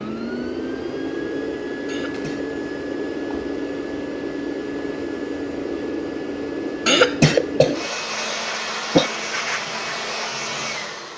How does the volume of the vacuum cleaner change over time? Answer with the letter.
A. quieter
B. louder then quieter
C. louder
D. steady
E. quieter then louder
D.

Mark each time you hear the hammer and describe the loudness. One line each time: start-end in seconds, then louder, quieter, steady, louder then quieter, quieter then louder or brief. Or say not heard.
not heard.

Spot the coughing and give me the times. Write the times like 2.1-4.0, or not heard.
1.9-2.5, 6.8-9.1.